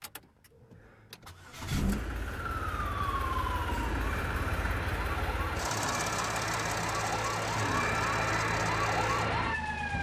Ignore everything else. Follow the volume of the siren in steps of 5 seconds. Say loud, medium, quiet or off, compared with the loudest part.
medium, loud.